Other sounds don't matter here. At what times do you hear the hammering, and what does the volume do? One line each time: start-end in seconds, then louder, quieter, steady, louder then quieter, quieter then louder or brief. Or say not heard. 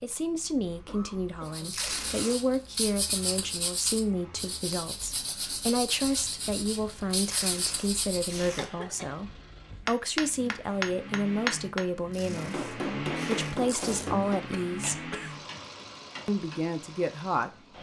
9.8-16.6 quieter.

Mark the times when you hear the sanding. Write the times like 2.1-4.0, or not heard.
1.4-8.3.